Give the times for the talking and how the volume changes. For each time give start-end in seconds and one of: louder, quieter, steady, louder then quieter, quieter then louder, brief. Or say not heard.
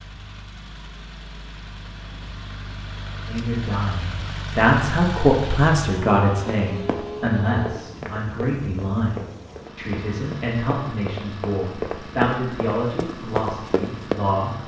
3.2-14.6 quieter.